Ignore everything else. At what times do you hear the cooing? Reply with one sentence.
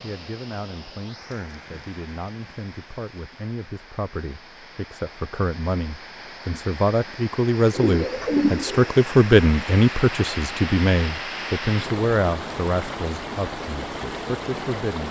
You can hear the cooing from 7.7 to 8.9 s.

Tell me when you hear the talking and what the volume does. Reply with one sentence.
You can hear the talking from 0.0 to 15.0 s, getting louder then quieter.